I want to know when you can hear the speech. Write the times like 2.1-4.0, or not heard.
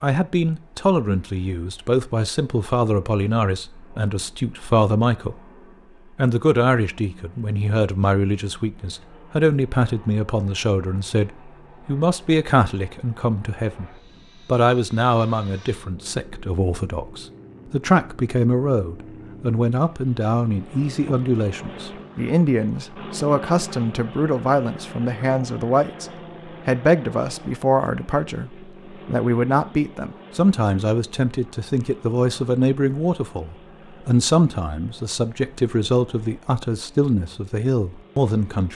0.0-5.4, 6.2-38.7.